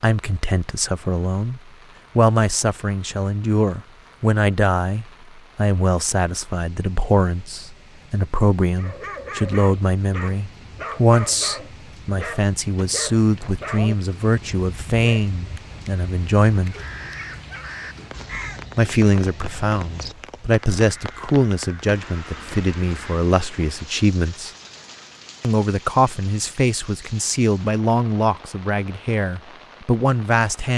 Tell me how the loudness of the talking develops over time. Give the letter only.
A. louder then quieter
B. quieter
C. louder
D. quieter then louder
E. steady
E.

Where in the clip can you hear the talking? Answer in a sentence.
You can hear the talking from 0.0 to 16.8 s, from 18.8 to 24.5 s and from 25.4 to 30.7 s.